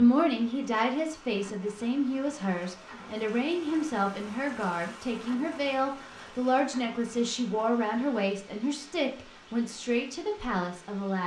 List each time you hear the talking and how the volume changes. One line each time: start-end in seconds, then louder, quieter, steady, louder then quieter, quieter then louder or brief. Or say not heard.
0.0-11.2 steady.